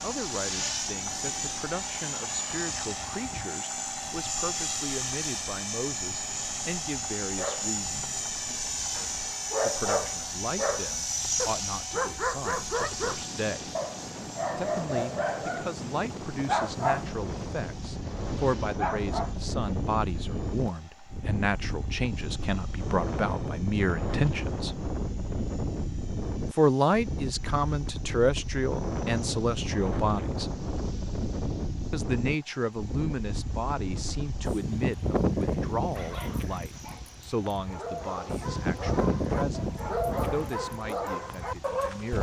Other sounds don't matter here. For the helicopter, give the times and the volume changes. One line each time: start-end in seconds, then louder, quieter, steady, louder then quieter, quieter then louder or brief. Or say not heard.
0.0-42.1 quieter.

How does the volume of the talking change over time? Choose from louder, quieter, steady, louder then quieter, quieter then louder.
louder then quieter.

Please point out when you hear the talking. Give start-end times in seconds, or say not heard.
0.0-8.2, 9.6-13.8, 14.6-24.8, 26.5-30.5, 31.9-42.1.